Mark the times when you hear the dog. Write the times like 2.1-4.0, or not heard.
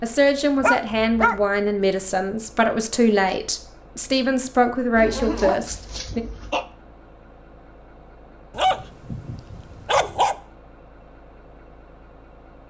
0.6-1.4, 5.0-6.7, 8.6-10.3.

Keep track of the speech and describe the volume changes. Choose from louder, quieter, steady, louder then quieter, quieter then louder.
steady.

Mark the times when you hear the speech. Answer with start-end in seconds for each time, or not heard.
0.0-6.2.